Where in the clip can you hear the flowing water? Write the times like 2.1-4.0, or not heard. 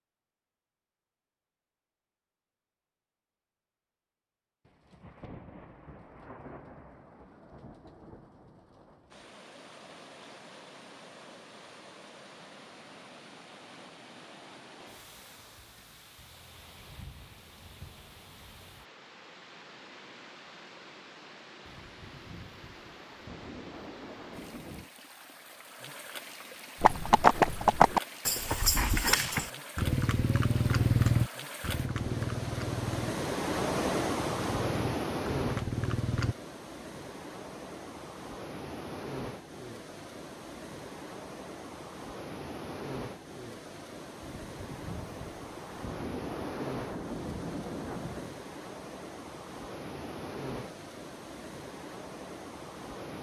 9.1-53.1.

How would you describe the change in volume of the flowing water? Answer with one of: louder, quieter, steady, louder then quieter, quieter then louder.
louder then quieter.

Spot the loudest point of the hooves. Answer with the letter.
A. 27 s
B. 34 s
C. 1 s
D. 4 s
A.